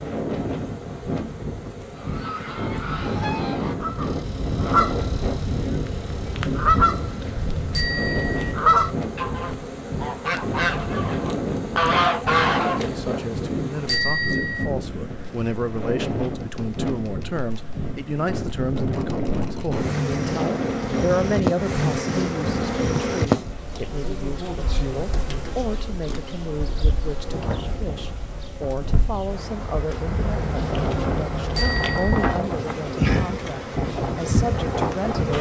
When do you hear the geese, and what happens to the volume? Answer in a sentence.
The geese can be heard from 1.9 to 12.9 s, getting louder.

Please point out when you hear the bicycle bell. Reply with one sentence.
The bicycle bell can be heard from 7.8 to 8.6 s, from 13.8 to 14.7 s and from 31.6 to 32.4 s.